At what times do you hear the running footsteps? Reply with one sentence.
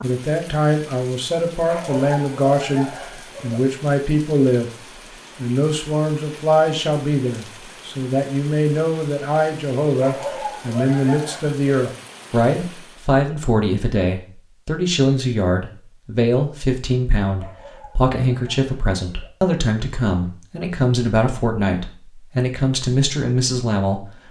You can't hear the running footsteps here.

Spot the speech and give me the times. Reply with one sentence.
The speech can be heard from 0.0 to 4.7 s and from 5.3 to 24.1 s.